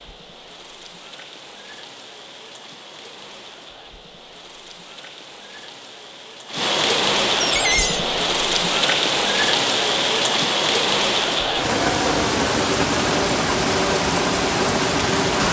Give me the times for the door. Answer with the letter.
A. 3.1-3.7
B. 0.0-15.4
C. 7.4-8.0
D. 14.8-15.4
C.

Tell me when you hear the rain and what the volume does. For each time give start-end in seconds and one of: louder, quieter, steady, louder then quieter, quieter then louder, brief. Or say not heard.
0.0-15.4 louder.